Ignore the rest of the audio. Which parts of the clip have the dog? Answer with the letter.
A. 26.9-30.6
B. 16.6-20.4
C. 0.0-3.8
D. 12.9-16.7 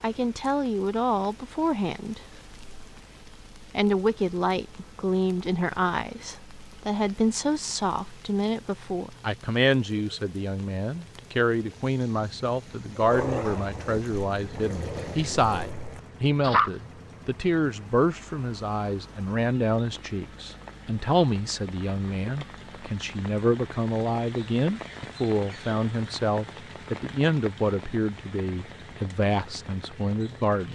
D.